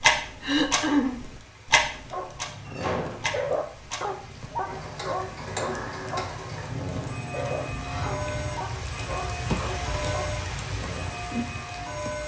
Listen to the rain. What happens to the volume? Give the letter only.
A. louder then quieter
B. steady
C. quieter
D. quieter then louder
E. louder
E.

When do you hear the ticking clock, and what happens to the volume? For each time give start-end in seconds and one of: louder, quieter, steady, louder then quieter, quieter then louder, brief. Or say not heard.
0.0-12.2 quieter.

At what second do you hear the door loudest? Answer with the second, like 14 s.
3 s.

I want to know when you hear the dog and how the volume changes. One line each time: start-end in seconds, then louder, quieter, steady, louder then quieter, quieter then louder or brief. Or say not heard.
2.1-11.3 quieter.